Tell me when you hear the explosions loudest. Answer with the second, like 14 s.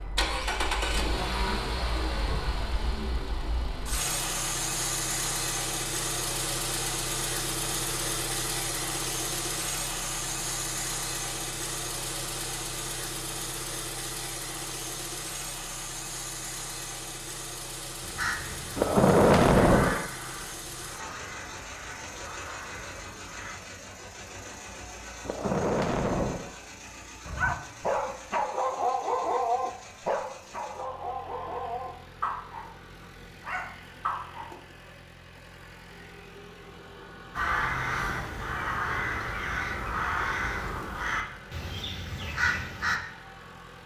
19 s.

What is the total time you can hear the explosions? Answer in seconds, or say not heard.
3 s.